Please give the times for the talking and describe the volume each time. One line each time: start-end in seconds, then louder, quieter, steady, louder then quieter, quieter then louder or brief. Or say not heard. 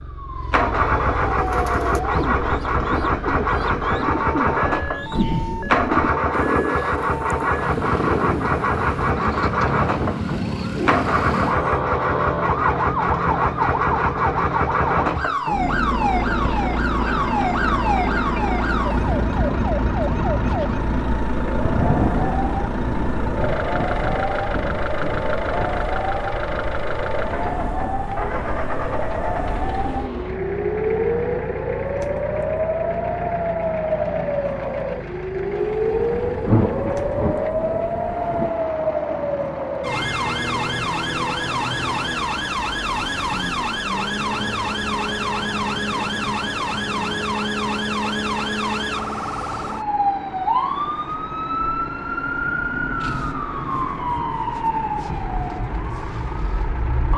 not heard.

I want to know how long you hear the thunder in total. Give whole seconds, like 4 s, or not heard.
7 s.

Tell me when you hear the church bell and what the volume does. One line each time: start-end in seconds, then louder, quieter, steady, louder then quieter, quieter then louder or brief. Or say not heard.
not heard.